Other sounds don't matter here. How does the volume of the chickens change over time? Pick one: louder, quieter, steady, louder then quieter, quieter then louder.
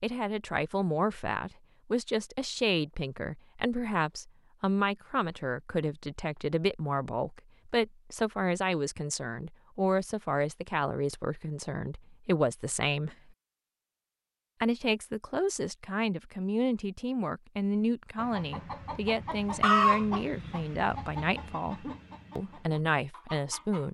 louder then quieter.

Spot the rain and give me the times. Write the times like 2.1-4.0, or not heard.
not heard.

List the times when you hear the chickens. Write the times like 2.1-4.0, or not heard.
18.1-23.8.